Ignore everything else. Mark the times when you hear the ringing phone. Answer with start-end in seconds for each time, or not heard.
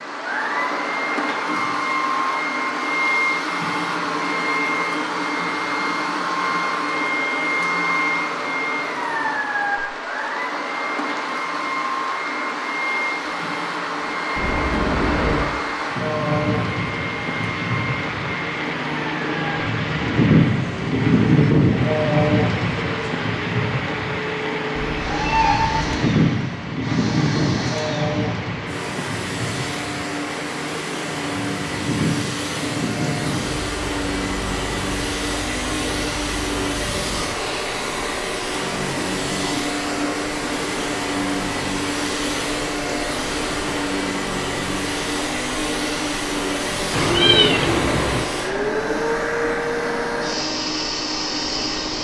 not heard.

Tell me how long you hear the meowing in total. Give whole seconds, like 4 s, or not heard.
4 s.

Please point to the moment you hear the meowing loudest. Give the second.
47 s.